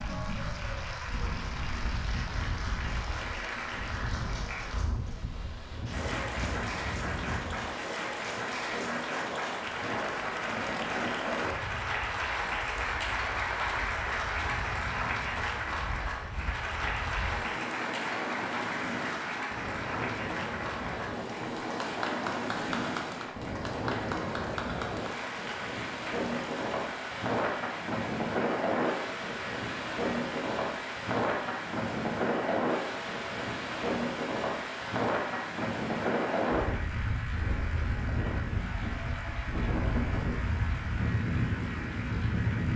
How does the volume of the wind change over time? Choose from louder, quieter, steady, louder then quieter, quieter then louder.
louder.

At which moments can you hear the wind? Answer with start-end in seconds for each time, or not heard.
0.0-42.7.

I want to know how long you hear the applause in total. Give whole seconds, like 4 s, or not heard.
43 s.